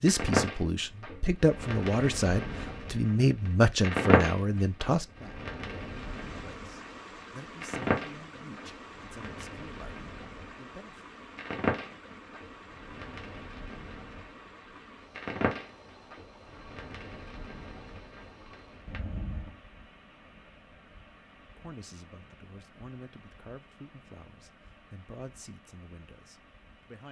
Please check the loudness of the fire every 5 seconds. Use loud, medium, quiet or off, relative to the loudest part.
loud, medium, medium, medium, off, off.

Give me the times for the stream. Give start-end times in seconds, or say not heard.
5.8-27.0.